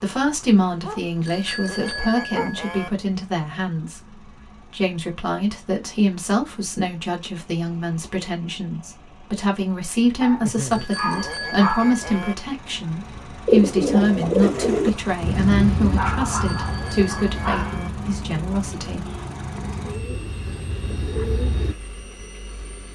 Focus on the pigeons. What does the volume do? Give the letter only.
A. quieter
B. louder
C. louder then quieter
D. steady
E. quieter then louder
E.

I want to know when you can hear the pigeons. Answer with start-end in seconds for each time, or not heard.
13.4-21.8.